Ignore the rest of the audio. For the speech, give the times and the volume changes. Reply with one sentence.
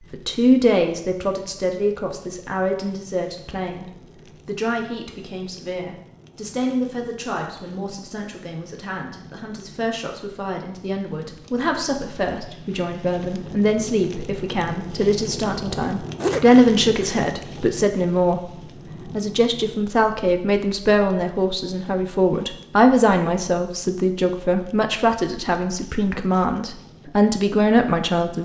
You can hear the speech from 0.0 to 28.4 s, getting quieter then louder.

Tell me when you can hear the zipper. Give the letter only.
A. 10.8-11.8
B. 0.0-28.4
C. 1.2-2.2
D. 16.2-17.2
D.